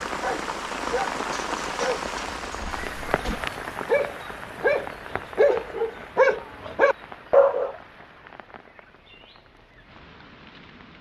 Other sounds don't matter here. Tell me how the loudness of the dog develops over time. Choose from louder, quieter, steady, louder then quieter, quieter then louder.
louder.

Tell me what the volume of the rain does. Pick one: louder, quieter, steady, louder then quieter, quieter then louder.
quieter.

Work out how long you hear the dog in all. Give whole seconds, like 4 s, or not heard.
8 s.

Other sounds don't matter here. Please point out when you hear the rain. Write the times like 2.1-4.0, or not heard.
0.0-10.9.